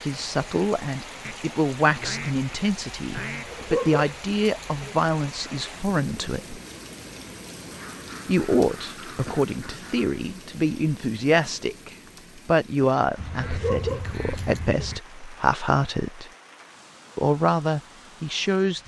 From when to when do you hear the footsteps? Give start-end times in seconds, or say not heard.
not heard.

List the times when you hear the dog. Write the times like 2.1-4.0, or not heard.
3.5-5.0, 13.4-14.8.